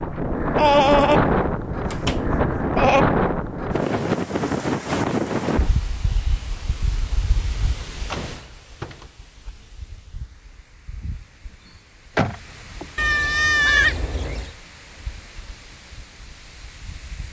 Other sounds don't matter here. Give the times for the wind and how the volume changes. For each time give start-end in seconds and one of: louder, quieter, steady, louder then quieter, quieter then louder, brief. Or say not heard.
0.0-17.2 quieter.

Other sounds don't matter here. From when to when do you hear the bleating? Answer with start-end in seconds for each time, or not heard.
0.6-3.0, 12.9-14.5.